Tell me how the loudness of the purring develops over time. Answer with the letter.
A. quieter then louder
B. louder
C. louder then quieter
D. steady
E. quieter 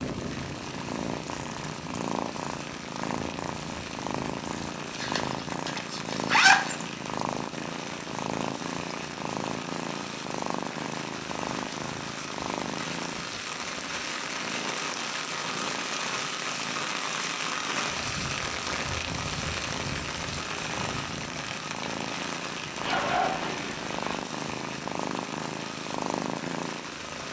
A.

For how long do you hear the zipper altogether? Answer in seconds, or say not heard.
3 s.